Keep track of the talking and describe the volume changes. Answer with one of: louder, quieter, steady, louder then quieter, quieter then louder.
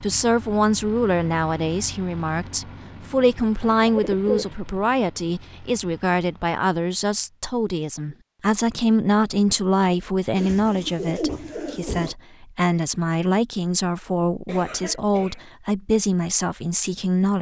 steady.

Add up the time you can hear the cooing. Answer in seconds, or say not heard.
3 s.